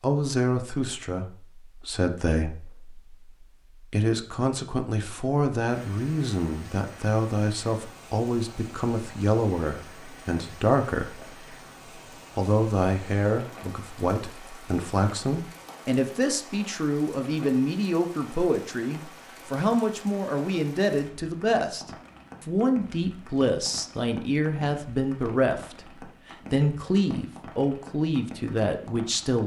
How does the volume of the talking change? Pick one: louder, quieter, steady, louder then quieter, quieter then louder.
steady.